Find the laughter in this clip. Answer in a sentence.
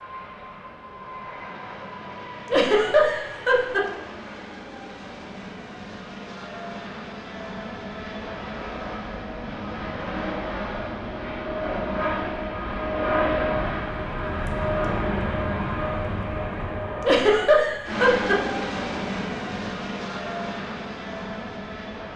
The laughter can be heard from 2.5 to 3.9 s and from 17.0 to 18.4 s.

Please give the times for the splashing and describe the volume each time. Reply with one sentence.
The splashing can't be heard in this clip.